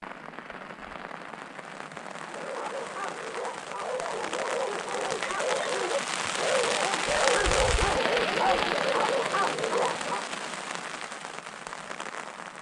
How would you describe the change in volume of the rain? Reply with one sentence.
The volume of the rain goes up, then down.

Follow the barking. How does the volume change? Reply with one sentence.
The volume of the barking goes up.